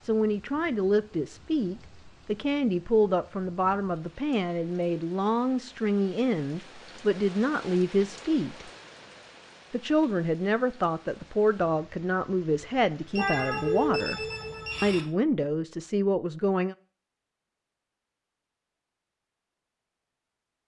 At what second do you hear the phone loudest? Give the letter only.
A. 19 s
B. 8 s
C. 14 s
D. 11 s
C.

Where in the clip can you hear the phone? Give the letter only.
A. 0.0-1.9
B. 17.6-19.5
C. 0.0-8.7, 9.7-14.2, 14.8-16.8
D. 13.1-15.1
D.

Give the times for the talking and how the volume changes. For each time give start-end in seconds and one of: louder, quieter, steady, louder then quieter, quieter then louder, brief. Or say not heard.
0.0-8.7 steady
9.7-14.2 steady
14.8-16.8 brief.